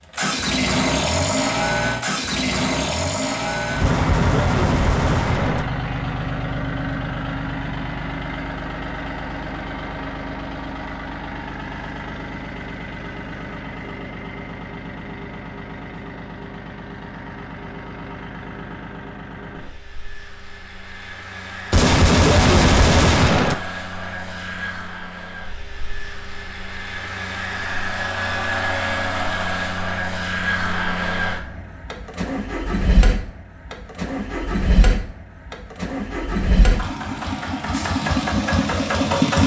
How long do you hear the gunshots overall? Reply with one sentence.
The gunshots can be heard for 4 seconds in total.